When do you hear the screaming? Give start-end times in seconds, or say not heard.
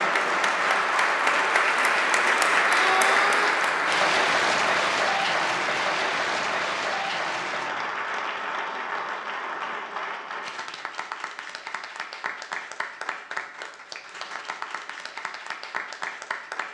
2.6-3.6.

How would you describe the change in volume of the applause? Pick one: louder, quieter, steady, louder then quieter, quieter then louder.
quieter.